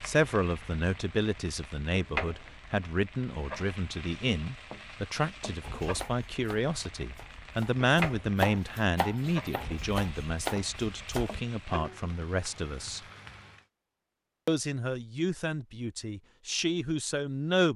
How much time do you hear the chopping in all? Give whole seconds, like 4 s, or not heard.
6 s.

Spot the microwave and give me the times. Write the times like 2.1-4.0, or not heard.
not heard.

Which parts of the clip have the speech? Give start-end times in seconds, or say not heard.
0.0-13.0, 14.4-17.7.